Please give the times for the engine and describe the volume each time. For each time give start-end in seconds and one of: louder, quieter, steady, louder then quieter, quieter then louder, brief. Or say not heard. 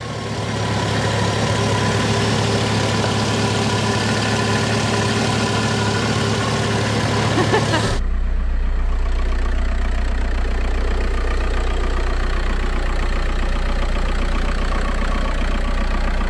0.0-16.2 quieter.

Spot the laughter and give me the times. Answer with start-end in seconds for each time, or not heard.
7.2-7.8.